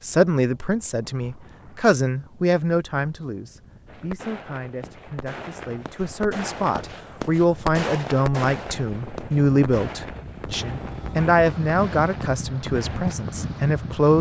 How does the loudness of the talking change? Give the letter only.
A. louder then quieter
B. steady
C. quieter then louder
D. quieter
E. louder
C.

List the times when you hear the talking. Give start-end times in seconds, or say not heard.
0.0-14.1.